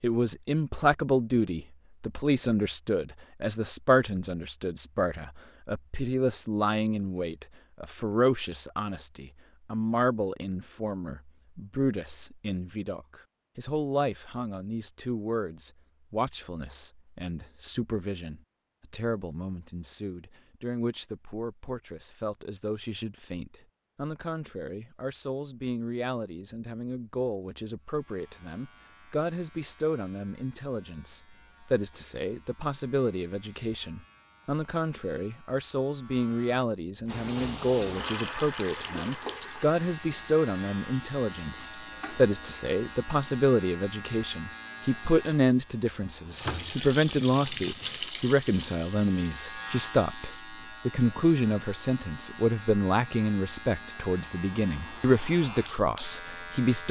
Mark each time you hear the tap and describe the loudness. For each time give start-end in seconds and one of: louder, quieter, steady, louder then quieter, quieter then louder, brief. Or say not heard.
37.0-42.3 quieter
46.4-50.5 quieter.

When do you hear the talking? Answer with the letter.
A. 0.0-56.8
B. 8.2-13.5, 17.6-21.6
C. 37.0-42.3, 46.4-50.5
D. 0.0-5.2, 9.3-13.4
A.